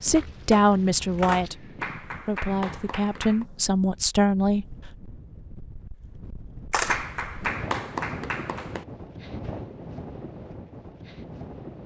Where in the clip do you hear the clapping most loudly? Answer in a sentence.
The volume of the clapping peaks at 8 seconds.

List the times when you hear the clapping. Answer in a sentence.
The clapping can be heard from 1.8 to 3.5 s and from 6.8 to 8.8 s.